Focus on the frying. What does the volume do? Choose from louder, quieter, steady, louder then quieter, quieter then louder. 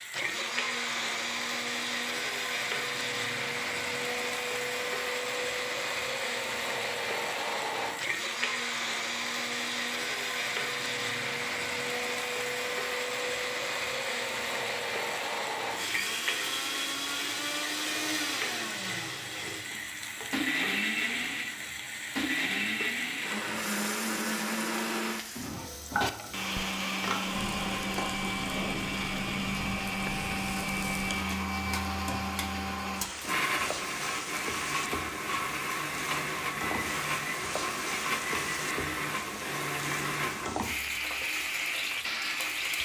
steady.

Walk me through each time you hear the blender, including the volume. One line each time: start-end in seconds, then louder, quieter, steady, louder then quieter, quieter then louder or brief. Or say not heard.
0.0-42.8 steady.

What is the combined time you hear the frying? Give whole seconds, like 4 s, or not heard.
43 s.